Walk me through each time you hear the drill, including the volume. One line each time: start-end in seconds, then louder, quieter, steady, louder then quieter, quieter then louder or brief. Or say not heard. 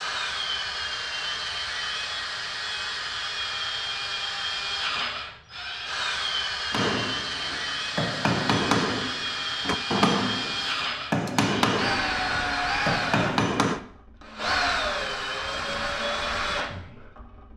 0.0-17.5 steady.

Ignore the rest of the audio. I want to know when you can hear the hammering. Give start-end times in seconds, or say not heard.
6.7-13.8.